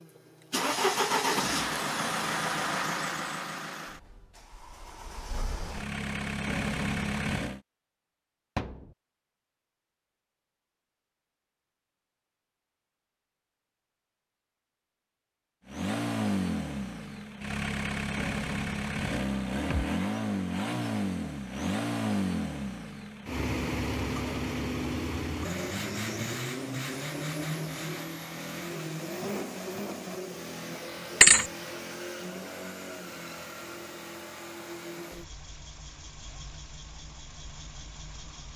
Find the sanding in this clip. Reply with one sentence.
The sanding can't be heard in this clip.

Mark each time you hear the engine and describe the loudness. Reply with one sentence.
You can hear the engine from 0.0 to 7.6 s, getting quieter then louder; and from 15.7 to 38.5 s, getting quieter.